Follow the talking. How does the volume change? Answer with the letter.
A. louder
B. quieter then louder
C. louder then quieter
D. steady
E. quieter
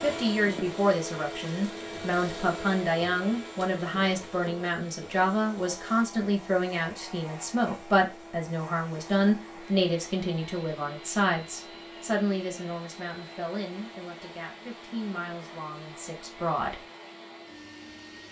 E.